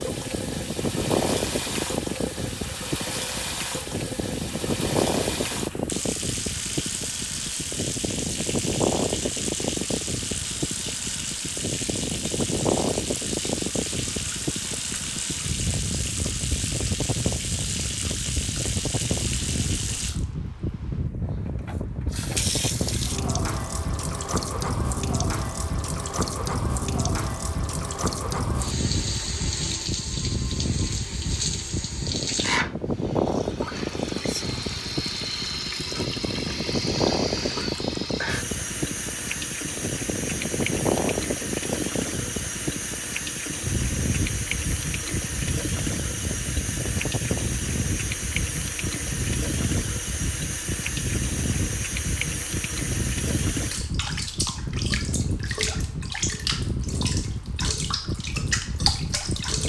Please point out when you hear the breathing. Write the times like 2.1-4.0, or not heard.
not heard.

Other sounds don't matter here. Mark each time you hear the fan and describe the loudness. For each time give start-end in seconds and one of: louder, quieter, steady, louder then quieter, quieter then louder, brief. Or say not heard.
0.0-59.6 steady.